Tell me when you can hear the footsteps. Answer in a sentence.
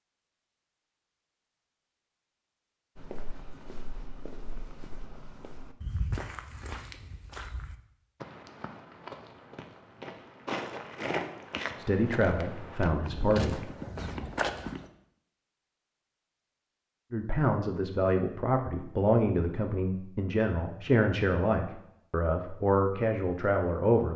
You can hear the footsteps from 3.0 to 14.9 s.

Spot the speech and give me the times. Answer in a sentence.
The speech can be heard from 11.8 to 13.7 s and from 17.1 to 24.1 s.